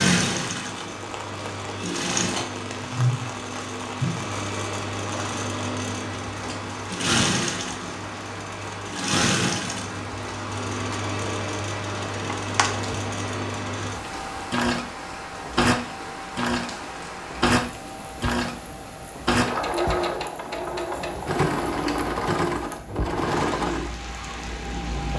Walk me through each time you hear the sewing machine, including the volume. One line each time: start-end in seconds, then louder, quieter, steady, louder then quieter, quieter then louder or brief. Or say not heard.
0.0-25.1 steady.